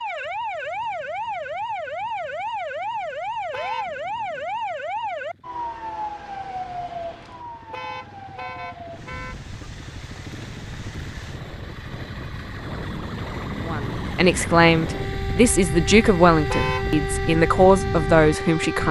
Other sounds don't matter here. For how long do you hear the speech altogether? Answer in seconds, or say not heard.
5 s.